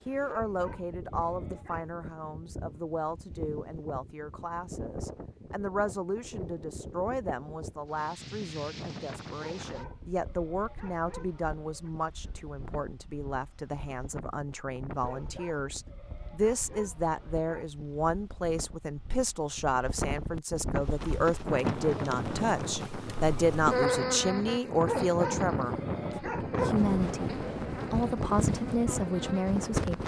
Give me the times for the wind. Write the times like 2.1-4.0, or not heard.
0.0-30.0.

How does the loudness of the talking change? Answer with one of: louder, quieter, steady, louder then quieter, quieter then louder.
louder.